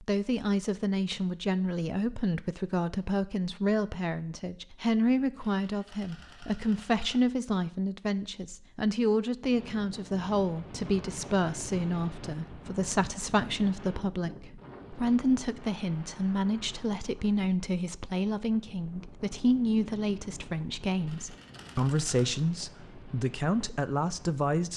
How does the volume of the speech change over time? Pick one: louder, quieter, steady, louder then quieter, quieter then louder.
steady.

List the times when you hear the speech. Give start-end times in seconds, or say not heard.
0.0-24.7.